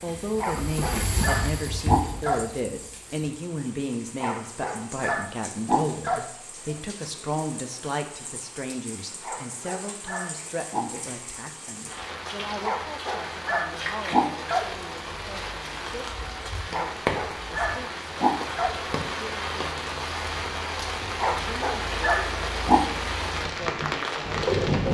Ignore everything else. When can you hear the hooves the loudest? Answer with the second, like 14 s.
1 s.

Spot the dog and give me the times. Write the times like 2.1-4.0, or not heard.
0.4-2.5, 4.2-6.2, 9.2-10.8, 12.6-14.7, 16.7-18.8, 21.2-22.9.